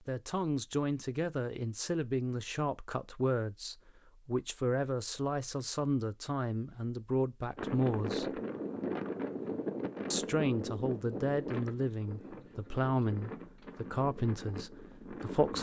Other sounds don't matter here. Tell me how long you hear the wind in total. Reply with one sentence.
You can hear the wind for 8 seconds altogether.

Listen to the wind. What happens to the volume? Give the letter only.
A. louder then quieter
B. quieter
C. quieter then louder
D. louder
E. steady
B.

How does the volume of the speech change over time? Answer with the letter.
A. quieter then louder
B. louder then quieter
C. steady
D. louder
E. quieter
C.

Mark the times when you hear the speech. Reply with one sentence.
You can hear the speech from 0.1 to 8.4 s and from 10.1 to 15.5 s.